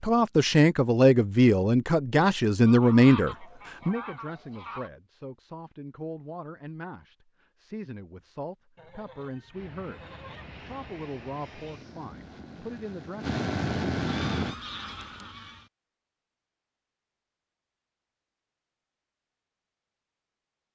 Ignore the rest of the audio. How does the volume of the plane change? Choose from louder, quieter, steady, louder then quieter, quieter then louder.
louder.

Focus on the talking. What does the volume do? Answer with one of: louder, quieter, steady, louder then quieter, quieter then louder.
quieter.